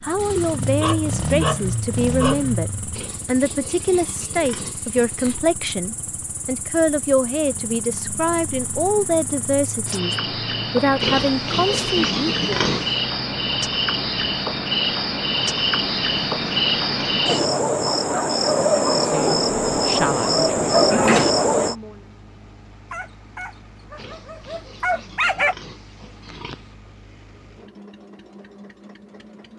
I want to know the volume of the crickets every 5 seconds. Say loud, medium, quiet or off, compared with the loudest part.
quiet, quiet, medium, loud, loud, off.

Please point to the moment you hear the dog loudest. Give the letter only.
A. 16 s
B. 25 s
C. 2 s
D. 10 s
B.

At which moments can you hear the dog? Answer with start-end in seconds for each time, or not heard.
0.8-2.5, 22.9-25.6.